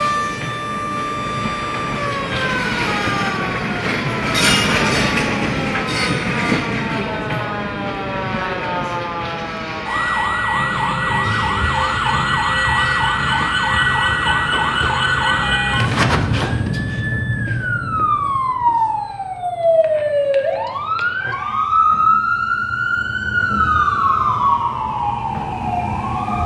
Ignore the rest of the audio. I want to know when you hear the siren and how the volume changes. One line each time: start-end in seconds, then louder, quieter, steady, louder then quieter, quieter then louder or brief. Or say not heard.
0.0-26.4 louder.